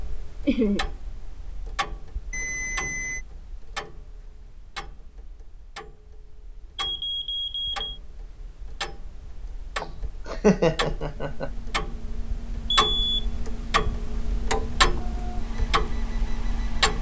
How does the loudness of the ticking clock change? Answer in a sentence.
The loudness of the ticking clock goes up.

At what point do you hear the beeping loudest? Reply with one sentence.
The loudest moment of the beeping is at 13 seconds.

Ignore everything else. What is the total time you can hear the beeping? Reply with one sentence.
You can hear the beeping for 3 seconds altogether.